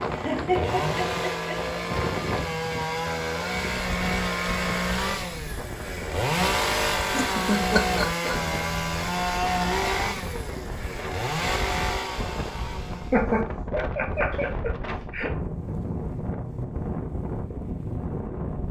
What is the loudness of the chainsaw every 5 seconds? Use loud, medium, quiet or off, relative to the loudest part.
loud, loud, medium, off.